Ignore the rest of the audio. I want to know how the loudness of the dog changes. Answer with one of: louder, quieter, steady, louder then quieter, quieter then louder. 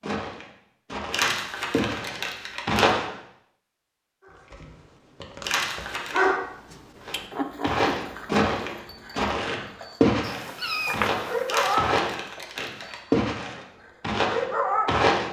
quieter then louder.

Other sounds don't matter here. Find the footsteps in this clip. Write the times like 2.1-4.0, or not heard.
0.0-3.1, 7.0-15.2.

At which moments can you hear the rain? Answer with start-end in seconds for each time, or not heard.
not heard.